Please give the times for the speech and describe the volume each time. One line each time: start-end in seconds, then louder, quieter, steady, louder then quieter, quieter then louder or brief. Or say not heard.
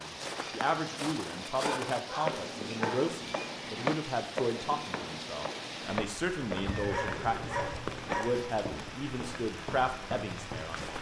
0.0-10.9 steady.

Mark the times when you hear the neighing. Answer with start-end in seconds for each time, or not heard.
6.5-8.1.